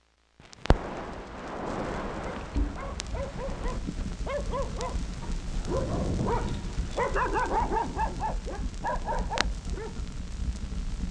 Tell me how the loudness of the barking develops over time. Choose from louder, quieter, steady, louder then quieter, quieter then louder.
louder then quieter.